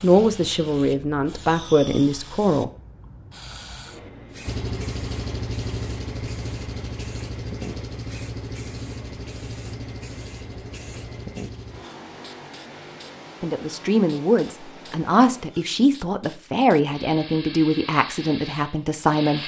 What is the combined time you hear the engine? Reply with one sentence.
You can hear the engine for 11 seconds altogether.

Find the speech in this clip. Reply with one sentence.
The speech can be heard from 0.0 to 2.7 s and from 13.4 to 19.4 s.